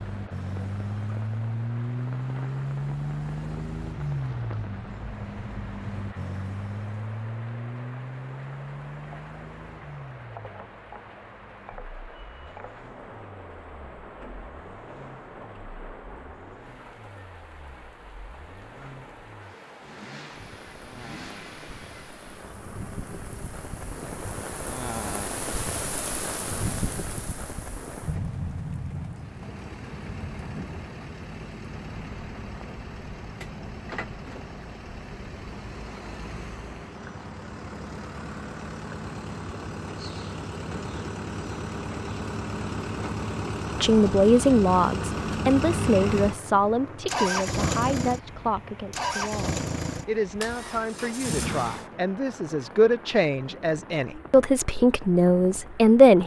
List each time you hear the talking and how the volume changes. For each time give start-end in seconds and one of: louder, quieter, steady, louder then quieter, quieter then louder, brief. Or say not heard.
43.8-56.2 quieter then louder.